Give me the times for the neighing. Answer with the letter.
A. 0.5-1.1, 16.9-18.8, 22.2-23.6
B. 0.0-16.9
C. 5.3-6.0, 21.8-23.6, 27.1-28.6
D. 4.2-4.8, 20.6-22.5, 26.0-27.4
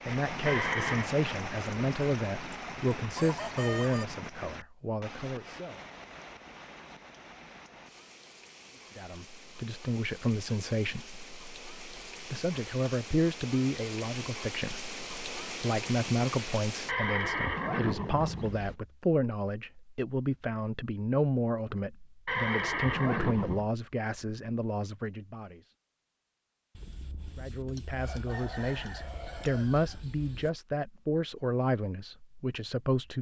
A.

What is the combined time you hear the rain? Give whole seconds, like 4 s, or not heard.
17 s.